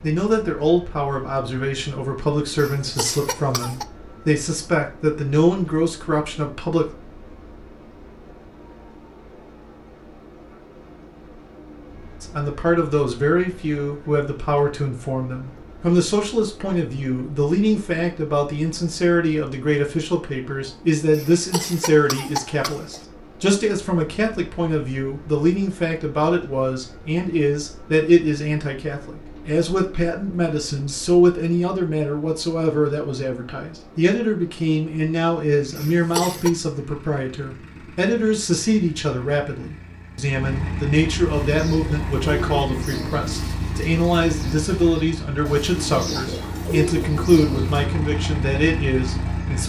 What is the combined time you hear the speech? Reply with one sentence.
The speech can be heard for 44 seconds in total.